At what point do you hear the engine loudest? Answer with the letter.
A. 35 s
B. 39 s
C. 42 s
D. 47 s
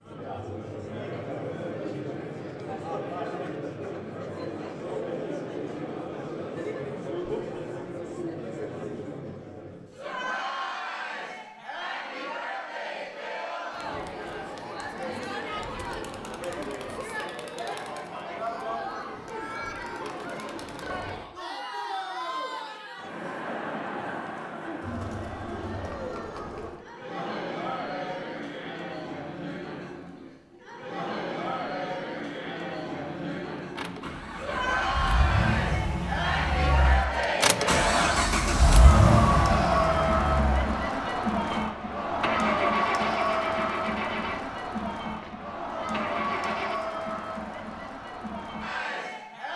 B.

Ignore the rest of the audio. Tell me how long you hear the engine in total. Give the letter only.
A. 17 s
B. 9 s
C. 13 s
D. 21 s
C.